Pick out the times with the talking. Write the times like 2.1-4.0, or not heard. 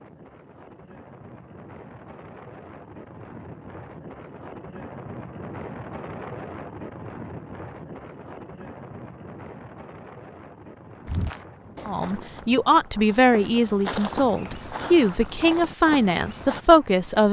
11.8-17.2.